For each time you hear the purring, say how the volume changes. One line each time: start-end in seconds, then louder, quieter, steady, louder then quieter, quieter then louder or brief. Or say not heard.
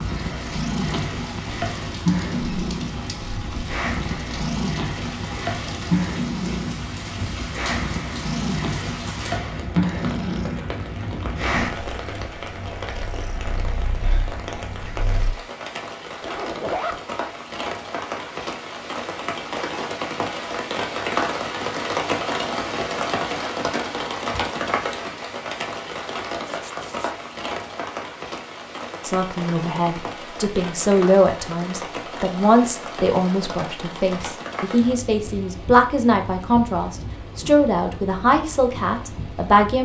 0.0-15.3 quieter.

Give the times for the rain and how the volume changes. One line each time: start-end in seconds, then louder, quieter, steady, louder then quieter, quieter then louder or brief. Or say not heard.
0.0-39.8 louder then quieter.